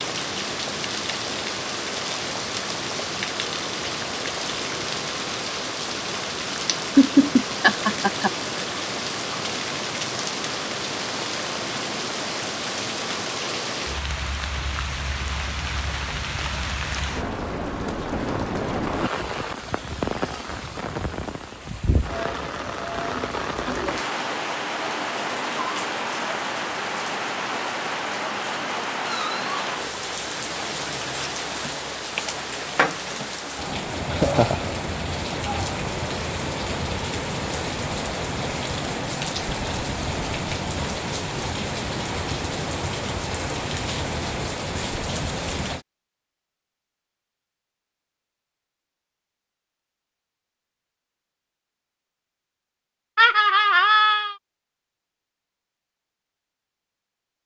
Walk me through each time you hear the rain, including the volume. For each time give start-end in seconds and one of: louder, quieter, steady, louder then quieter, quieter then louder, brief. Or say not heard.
0.0-45.9 steady.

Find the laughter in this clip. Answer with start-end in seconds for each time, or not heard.
7.0-8.3, 34.0-34.7, 53.1-54.4.